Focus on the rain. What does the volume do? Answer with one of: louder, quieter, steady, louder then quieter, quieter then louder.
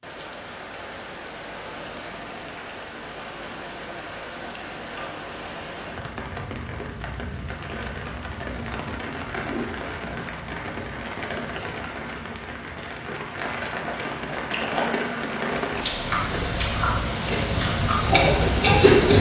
louder.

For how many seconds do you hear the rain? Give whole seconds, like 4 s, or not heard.
19 s.